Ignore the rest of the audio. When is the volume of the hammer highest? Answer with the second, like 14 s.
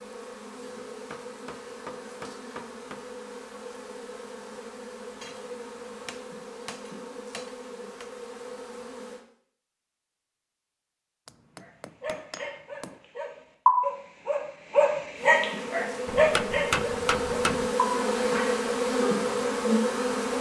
17 s.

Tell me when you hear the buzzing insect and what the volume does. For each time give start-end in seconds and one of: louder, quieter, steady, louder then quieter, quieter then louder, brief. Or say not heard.
0.0-9.2 steady
15.1-20.3 louder.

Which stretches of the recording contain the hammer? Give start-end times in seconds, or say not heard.
0.8-3.0, 5.2-8.1, 11.2-13.1, 16.1-17.8.